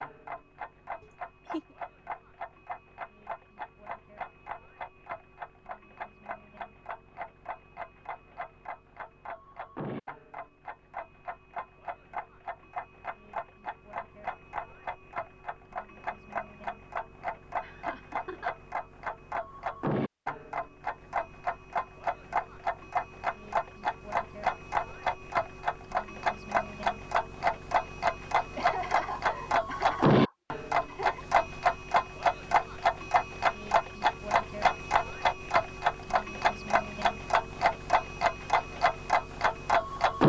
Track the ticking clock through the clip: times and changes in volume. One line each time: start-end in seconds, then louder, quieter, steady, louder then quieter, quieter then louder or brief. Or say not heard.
0.0-40.2 louder.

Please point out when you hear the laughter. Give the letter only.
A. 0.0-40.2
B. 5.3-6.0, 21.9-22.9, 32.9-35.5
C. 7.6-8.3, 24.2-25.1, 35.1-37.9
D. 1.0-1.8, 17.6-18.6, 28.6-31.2
D.